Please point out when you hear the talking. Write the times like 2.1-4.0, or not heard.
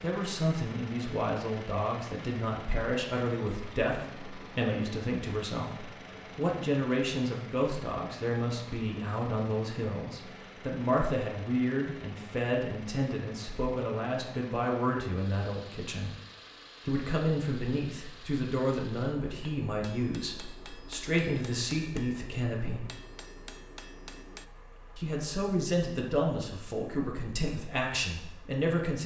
0.0-16.1, 16.9-22.9, 24.9-29.0.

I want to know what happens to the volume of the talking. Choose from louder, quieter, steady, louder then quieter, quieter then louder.
steady.